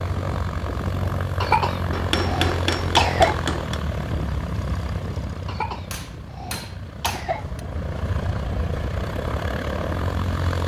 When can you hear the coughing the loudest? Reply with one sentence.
The volume of the coughing peaks at 3 seconds.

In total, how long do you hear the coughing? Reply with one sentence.
You can hear the coughing for 4 seconds altogether.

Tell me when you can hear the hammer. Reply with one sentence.
The hammer can be heard from 1.9 to 3.8 s and from 5.9 to 7.6 s.